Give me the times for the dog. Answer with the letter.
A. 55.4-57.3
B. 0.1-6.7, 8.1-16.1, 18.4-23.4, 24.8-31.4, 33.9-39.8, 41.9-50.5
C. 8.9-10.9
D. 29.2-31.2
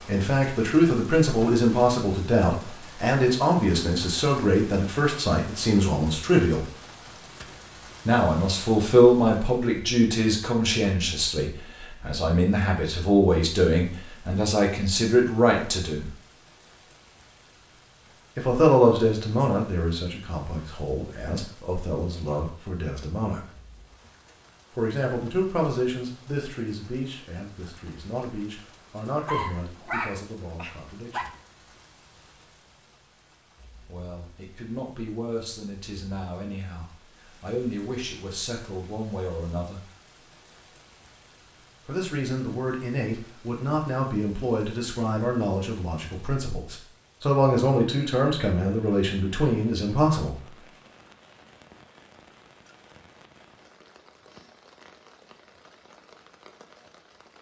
D.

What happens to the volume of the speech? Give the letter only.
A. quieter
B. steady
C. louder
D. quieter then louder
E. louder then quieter
D.